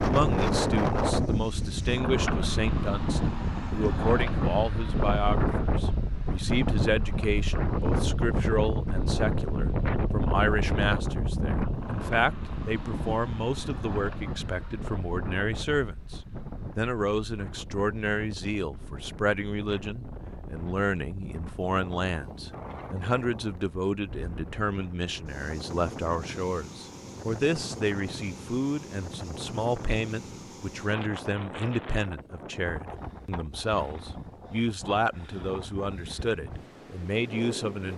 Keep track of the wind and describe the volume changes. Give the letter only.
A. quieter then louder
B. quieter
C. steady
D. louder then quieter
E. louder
B.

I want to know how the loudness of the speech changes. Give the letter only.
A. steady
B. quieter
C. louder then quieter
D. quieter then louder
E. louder
A.